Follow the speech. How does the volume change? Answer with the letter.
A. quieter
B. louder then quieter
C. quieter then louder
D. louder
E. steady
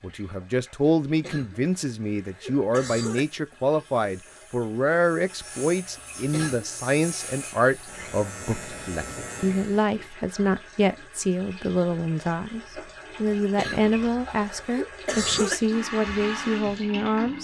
E.